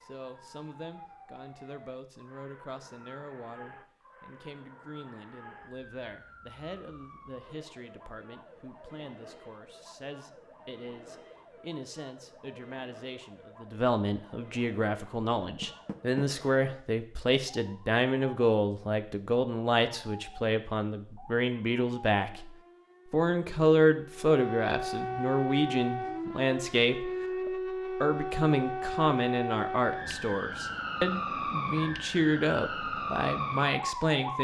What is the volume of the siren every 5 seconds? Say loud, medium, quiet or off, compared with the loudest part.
quiet, quiet, quiet, quiet, medium, loud, loud.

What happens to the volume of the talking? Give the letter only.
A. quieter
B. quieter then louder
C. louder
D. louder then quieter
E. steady
C.